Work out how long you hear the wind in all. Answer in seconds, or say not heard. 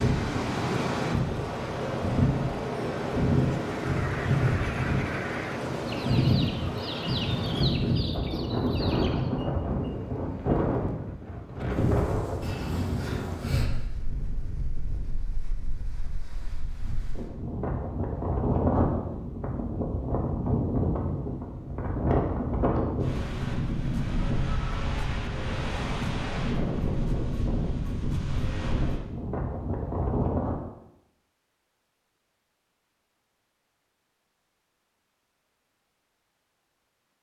31 s.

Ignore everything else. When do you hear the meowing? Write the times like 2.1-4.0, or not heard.
not heard.